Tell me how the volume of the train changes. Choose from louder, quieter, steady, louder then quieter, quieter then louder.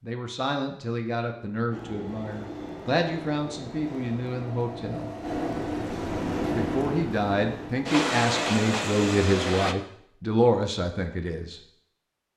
louder.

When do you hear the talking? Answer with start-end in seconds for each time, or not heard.
0.0-5.1, 6.5-11.6.